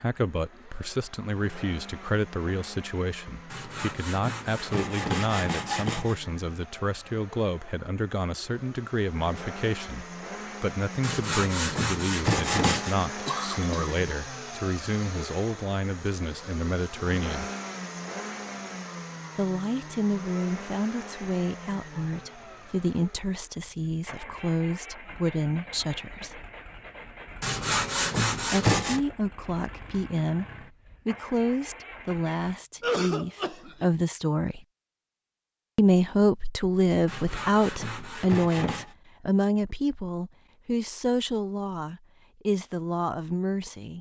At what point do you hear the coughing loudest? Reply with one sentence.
The loudest moment of the coughing is at 33 seconds.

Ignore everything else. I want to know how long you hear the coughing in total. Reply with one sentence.
You can hear the coughing for 2 seconds altogether.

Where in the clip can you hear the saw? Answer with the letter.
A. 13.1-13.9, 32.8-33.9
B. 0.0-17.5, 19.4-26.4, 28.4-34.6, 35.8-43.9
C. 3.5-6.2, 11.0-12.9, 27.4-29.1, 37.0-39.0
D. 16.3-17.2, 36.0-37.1
C.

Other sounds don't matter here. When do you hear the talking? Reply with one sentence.
You can hear the talking from 0.0 to 17.5 s, from 19.4 to 26.4 s, from 28.4 to 34.6 s and from 35.8 to 43.9 s.